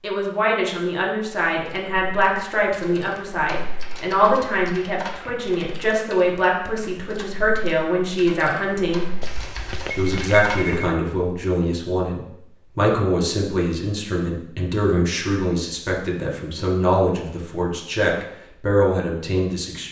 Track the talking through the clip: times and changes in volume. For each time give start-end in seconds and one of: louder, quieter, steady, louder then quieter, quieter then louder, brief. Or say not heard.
0.0-9.1 steady
9.9-19.8 steady.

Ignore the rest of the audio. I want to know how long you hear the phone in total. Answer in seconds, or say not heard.
2 s.